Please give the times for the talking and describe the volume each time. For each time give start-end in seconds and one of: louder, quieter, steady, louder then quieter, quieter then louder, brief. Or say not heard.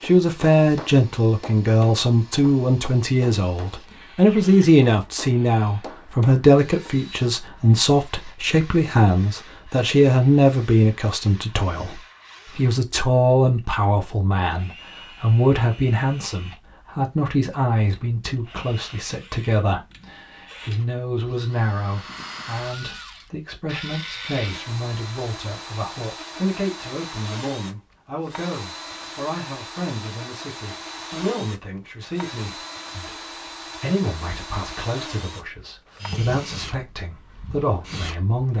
0.0-38.5 quieter.